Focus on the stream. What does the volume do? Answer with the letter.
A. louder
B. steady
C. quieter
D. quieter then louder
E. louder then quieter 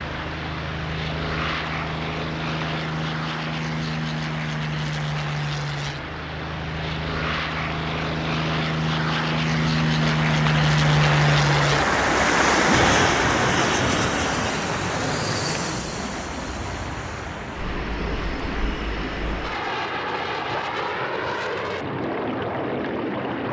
E.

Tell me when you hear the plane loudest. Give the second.
11 s.